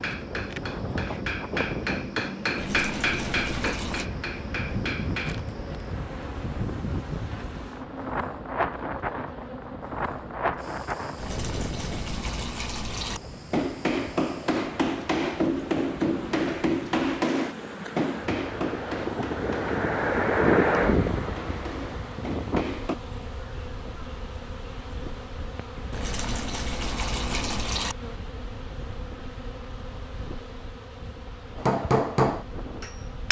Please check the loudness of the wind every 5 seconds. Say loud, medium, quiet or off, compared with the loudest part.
medium, medium, medium, medium, loud, quiet, quiet.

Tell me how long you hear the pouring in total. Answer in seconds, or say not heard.
6 s.